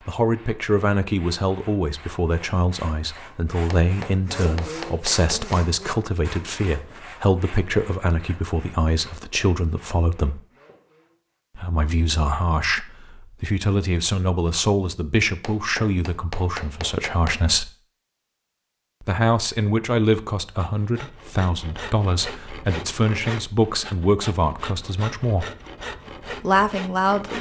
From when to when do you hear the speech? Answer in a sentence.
You can hear the speech from 0.1 to 10.4 s, from 11.6 to 17.7 s, from 19.0 to 25.4 s and from 26.4 to 27.3 s.